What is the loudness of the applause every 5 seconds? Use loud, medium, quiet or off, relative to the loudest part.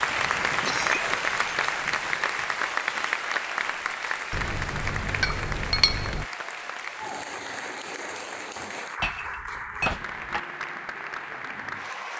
loud, medium, medium.